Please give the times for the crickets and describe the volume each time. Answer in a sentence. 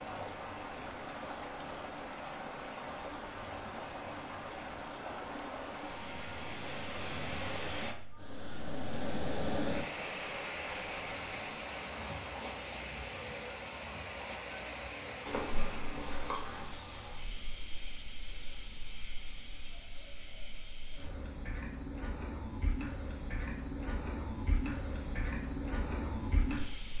The crickets can be heard from 0.0 to 26.9 s, getting quieter.